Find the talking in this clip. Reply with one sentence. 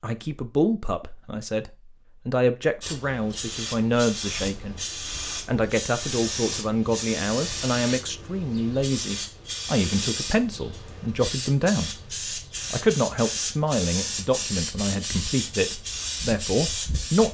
You can hear the talking from 0.0 to 4.8 s, from 5.5 to 12.0 s and from 12.7 to 17.2 s.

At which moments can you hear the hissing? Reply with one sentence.
The hissing can be heard from 2.8 to 17.2 s.